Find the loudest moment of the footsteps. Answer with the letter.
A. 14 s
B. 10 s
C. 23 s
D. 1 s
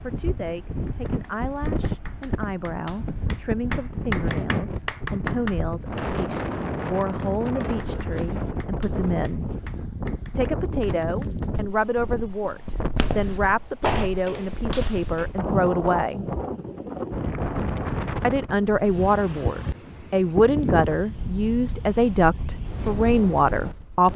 A.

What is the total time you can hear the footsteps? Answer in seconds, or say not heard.
3 s.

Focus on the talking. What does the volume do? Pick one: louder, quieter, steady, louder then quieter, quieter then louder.
louder.